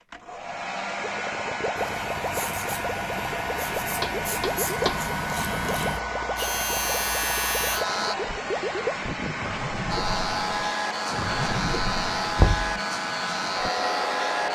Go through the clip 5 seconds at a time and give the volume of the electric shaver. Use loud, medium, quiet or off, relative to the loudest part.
medium, loud, loud.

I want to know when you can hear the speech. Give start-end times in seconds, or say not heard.
not heard.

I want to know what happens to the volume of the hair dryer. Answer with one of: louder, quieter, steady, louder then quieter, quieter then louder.
steady.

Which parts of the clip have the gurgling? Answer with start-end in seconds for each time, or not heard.
1.0-12.5.